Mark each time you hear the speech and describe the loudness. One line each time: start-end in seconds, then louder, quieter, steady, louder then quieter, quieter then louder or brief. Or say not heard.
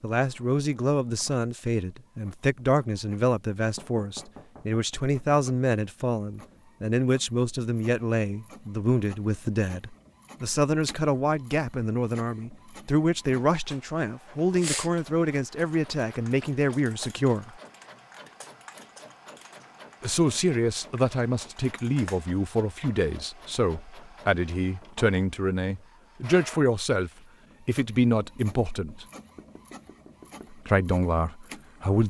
0.0-17.5 steady
20.0-29.1 steady
30.5-32.0 brief.